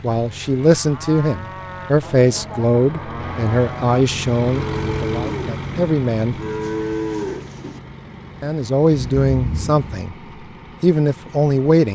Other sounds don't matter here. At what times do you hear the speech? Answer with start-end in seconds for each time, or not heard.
0.0-6.3, 8.4-10.2, 10.8-11.8.